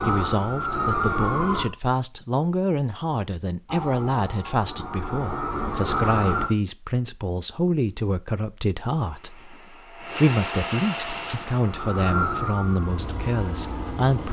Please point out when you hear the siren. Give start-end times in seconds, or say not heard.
0.0-1.6, 3.6-6.5, 11.0-14.0.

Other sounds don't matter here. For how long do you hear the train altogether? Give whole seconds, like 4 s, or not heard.
5 s.